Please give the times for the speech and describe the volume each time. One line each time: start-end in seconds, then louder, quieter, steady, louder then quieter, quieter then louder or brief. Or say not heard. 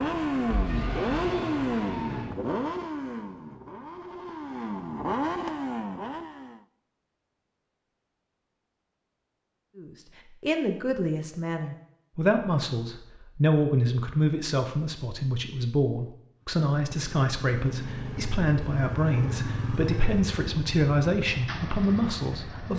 9.8-22.7 steady.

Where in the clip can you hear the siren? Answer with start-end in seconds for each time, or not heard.
0.0-2.3.